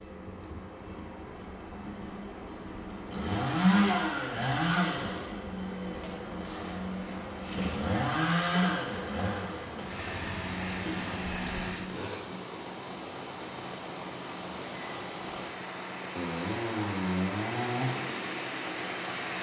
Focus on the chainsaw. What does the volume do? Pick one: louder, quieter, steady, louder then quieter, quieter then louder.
quieter then louder.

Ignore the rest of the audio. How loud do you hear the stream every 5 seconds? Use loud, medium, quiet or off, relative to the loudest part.
medium, medium, loud, loud.